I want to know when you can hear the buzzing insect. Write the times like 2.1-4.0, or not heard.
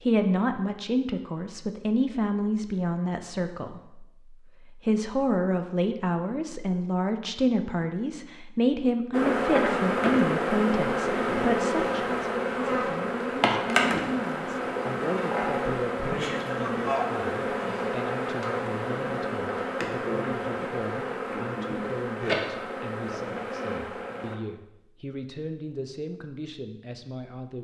9.1-24.4.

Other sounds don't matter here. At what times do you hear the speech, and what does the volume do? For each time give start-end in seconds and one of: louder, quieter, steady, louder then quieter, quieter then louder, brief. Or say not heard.
0.0-27.5 quieter.